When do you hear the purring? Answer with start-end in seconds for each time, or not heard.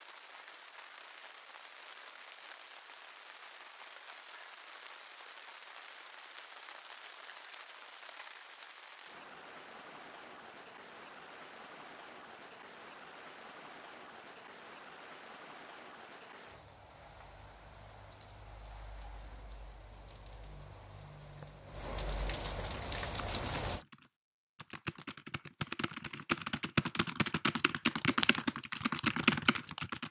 not heard.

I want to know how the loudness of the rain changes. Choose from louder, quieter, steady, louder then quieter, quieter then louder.
louder.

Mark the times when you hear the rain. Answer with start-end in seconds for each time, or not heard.
0.0-23.9.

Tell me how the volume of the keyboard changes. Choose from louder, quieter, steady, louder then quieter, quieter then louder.
louder.